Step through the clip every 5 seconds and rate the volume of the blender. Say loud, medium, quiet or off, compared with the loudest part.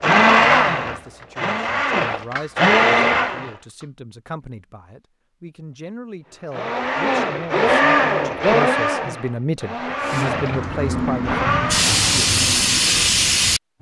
loud, loud, medium.